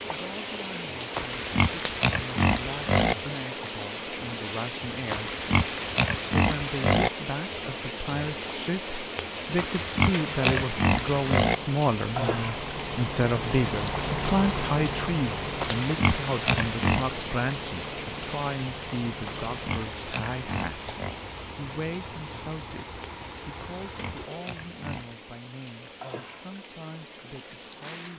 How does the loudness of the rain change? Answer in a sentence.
The loudness of the rain goes down.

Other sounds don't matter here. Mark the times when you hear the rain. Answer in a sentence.
The rain can be heard from 0.0 to 28.1 s.